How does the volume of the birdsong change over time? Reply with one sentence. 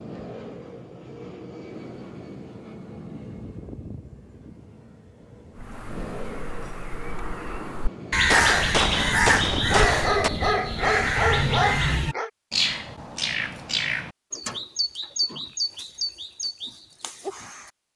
The volume of the birdsong goes up, then down.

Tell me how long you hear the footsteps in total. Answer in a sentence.
You can't hear the footsteps here.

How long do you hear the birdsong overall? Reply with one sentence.
You can hear the birdsong for 12 seconds altogether.